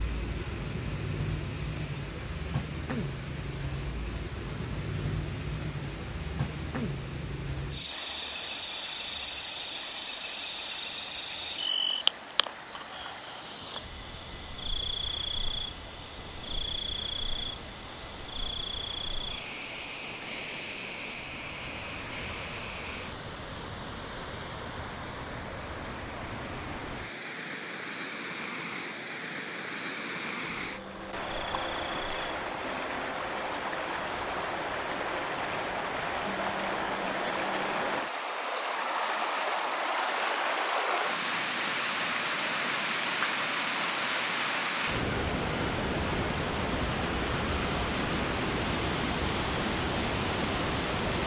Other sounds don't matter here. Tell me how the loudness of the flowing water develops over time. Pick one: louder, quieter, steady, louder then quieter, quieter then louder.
louder.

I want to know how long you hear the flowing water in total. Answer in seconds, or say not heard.
51 s.